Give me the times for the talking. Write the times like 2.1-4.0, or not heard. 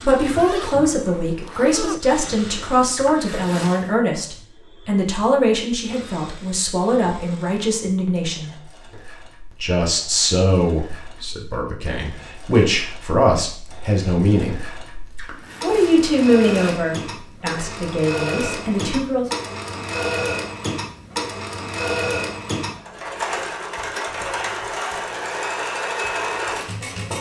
0.0-8.5, 9.6-14.6, 15.6-19.2.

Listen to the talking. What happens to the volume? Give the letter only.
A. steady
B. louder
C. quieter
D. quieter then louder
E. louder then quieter
A.